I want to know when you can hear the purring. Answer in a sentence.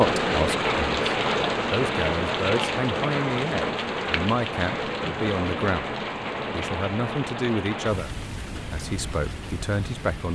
You can't hear the purring here.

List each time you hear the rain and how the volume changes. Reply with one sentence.
You can hear the rain from 0.0 to 10.2 s, getting quieter.